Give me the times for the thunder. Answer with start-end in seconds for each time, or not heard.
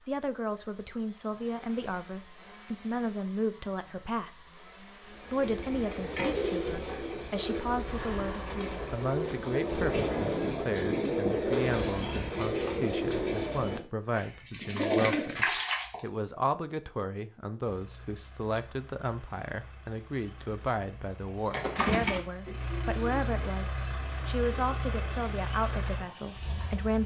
9.7-11.7.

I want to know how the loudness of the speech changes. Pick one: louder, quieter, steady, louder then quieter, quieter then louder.
steady.